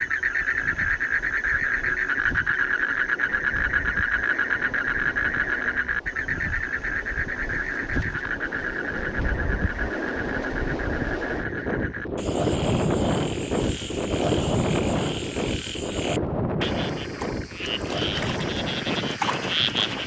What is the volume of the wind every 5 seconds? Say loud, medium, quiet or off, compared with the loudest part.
quiet, medium, loud, loud.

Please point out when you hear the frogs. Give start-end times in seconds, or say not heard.
0.0-20.0.